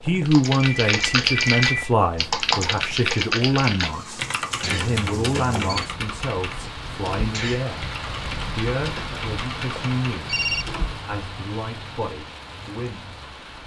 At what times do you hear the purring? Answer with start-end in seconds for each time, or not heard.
not heard.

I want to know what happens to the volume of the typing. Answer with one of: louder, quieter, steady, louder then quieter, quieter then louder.
quieter.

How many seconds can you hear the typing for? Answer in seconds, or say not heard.
11 s.